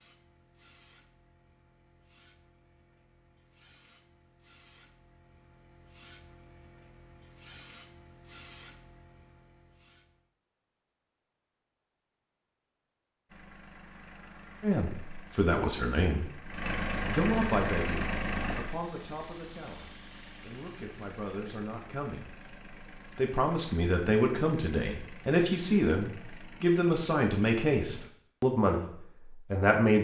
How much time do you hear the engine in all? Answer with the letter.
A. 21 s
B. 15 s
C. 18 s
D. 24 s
B.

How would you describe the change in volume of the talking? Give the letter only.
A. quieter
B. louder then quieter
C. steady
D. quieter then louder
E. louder
D.